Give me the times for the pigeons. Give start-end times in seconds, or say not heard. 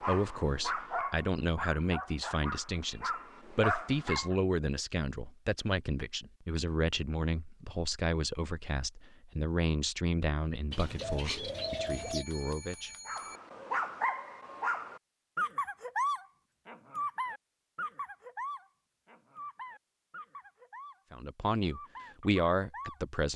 10.7-12.2.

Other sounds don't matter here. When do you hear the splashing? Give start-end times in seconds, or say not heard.
not heard.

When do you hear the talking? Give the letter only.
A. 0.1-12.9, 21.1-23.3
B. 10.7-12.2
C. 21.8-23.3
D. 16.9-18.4
A.